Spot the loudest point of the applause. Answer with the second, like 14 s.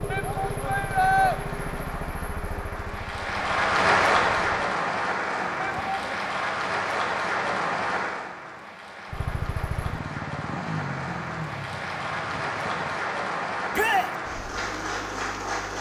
4 s.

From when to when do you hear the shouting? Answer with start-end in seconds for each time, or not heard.
0.1-1.4, 5.6-6.2, 13.7-14.1.